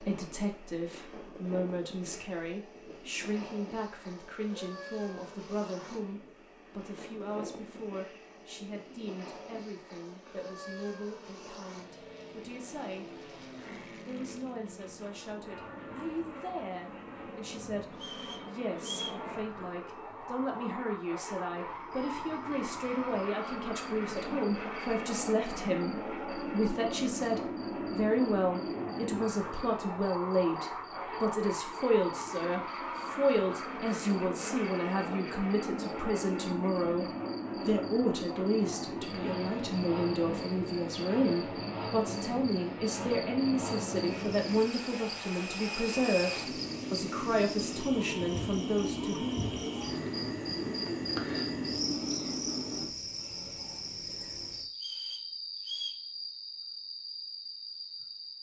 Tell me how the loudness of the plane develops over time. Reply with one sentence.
The volume of the plane goes up.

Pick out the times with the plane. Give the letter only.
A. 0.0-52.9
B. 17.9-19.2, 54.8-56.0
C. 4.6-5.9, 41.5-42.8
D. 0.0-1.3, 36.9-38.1
A.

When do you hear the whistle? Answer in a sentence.
The whistle can be heard from 17.9 to 19.2 s and from 54.8 to 56.0 s.